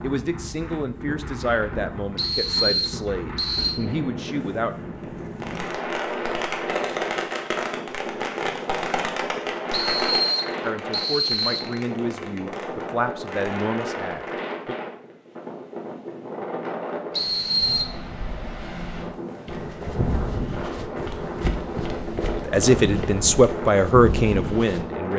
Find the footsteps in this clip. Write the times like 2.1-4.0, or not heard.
19.4-24.9.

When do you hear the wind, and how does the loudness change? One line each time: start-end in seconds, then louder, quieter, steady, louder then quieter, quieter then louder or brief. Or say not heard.
0.0-25.1 steady.